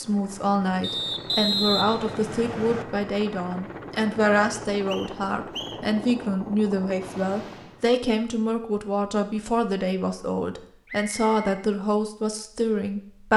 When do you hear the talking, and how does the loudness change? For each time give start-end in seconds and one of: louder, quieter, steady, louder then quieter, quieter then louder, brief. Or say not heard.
0.0-13.3 steady.